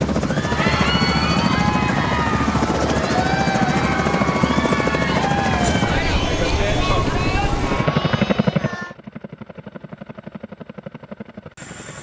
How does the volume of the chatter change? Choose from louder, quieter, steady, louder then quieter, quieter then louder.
steady.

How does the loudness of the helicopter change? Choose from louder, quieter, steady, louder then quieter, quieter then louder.
quieter.